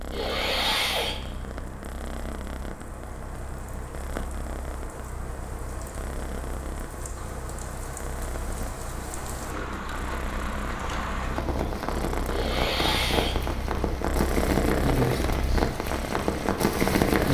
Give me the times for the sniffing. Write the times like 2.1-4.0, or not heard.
0.1-1.2, 12.3-13.4.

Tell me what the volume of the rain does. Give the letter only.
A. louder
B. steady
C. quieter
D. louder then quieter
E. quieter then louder
A.